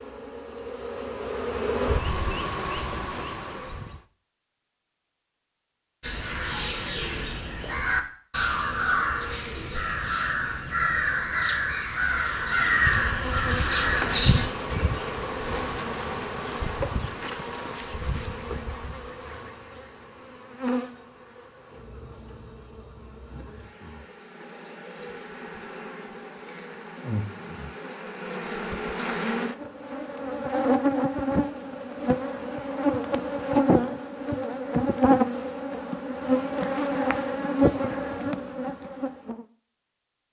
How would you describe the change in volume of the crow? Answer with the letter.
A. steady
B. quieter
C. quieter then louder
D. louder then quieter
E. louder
E.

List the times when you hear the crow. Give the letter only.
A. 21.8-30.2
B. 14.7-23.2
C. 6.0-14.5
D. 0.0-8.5
C.